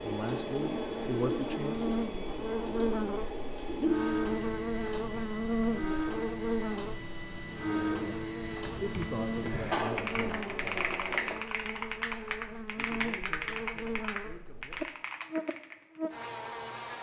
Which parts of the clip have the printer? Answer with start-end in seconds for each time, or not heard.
0.0-11.4.